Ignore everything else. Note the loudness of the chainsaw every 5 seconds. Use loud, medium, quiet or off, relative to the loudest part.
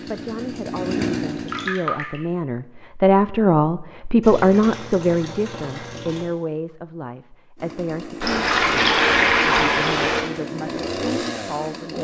loud, medium, loud.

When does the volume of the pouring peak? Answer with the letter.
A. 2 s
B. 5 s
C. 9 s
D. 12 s
C.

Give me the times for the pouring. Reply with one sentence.
The pouring can be heard from 1.4 to 2.2 s, from 4.2 to 6.2 s and from 8.2 to 10.2 s.